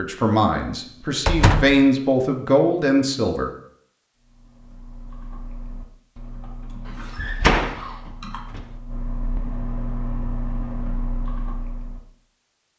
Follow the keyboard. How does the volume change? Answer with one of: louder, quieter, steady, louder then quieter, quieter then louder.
louder.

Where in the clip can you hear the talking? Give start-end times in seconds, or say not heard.
0.0-3.5.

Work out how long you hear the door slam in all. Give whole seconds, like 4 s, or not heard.
2 s.